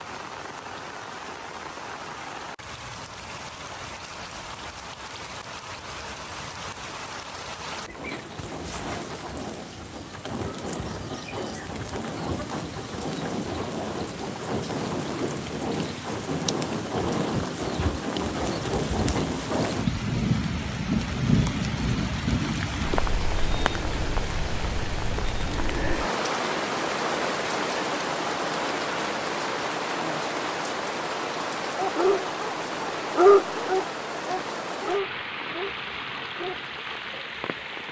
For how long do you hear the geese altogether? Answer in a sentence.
You can't hear the geese here.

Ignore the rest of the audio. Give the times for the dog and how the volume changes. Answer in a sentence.
The dog can be heard from 31.8 to 37.2 s, getting louder then quieter.